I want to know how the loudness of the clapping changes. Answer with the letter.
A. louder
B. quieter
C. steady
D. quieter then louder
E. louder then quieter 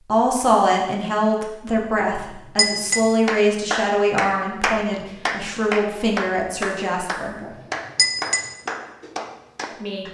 B.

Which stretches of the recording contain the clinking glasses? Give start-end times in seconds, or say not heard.
2.0-3.0, 7.4-8.4.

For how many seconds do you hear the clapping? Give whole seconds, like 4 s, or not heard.
7 s.